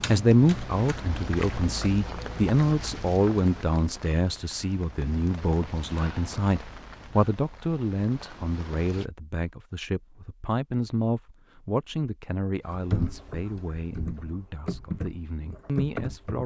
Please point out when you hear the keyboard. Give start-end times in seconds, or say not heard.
0.0-1.7, 12.7-16.4.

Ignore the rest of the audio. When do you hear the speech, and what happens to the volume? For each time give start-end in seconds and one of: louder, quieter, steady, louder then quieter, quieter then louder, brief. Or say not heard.
0.1-16.4 quieter.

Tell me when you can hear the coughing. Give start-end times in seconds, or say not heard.
not heard.